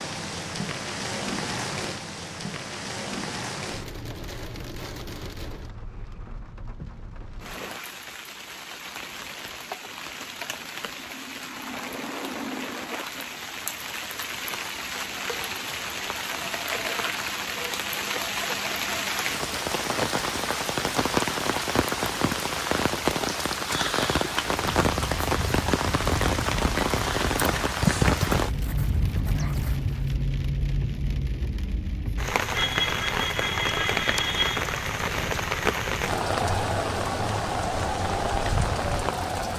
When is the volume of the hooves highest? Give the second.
28 s.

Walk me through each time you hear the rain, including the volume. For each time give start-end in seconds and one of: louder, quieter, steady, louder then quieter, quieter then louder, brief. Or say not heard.
0.0-39.5 louder.